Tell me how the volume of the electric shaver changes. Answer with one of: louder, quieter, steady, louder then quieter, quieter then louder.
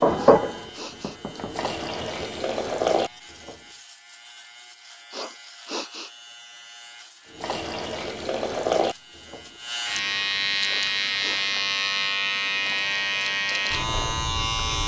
louder.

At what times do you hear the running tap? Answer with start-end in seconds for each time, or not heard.
0.0-3.1, 7.3-14.2.